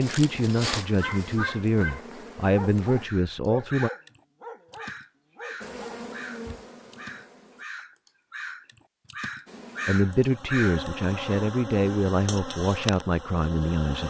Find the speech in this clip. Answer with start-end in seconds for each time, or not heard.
0.0-3.9, 9.8-14.0.